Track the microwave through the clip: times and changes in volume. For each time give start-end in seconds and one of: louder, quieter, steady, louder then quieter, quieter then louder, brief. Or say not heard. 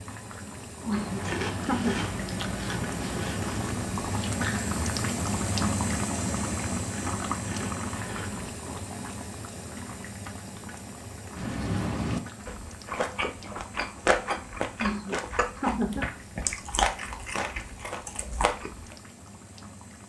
not heard.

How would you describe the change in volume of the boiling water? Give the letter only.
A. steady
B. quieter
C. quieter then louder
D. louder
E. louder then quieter
E.